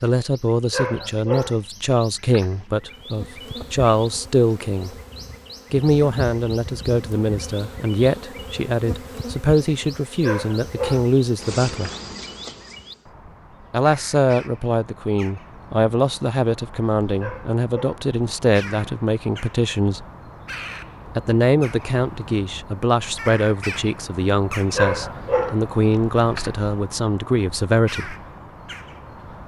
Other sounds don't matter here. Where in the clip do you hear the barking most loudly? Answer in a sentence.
The volume of the barking peaks at 25 seconds.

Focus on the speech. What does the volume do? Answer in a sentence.
The volume of the speech stays about the same.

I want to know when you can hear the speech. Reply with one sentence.
You can hear the speech from 0.0 to 4.9 s, from 5.7 to 11.9 s, from 13.7 to 20.1 s and from 21.1 to 28.1 s.